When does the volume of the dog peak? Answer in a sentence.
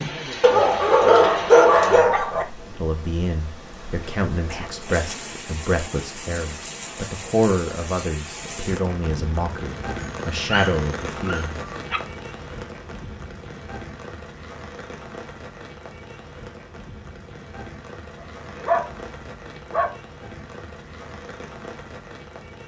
The volume of the dog peaks at 2 seconds.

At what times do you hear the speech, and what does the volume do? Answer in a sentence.
The speech can be heard from 0.0 to 11.6 s, getting louder.